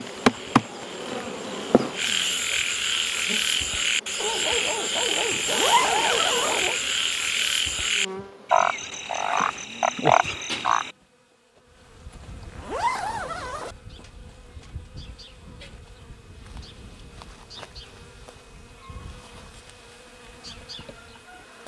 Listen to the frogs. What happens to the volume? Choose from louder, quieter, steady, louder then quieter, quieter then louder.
louder.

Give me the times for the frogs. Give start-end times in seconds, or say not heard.
0.0-10.9.